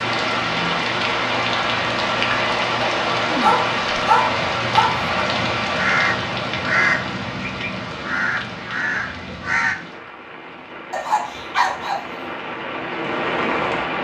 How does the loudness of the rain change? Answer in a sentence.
The loudness of the rain goes down, then up.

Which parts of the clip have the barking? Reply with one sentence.
You can hear the barking from 3.2 to 5.0 s and from 10.9 to 12.0 s.